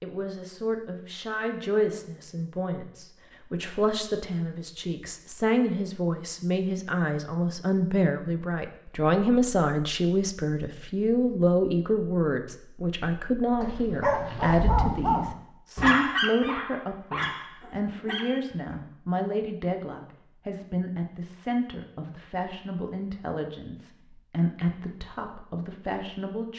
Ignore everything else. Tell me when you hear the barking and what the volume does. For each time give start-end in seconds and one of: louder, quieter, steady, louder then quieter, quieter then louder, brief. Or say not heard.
13.6-18.8 quieter.